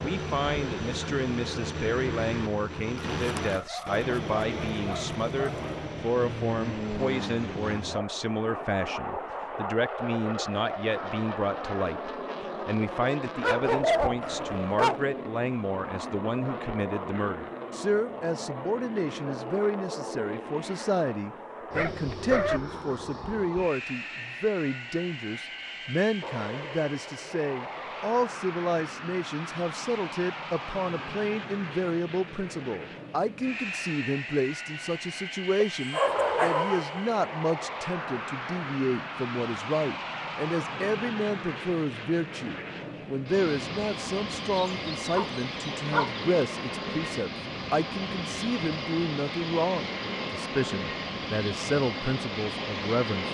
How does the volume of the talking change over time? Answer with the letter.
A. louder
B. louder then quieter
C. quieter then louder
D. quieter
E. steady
E.